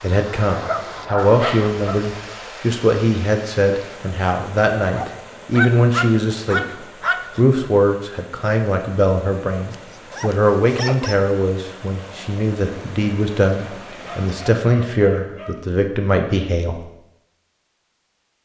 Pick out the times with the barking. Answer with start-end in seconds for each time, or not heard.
0.5-2.1, 4.9-7.4, 9.7-11.2, 14.0-15.8.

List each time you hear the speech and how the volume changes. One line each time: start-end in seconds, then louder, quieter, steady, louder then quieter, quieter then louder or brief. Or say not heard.
0.0-16.9 steady.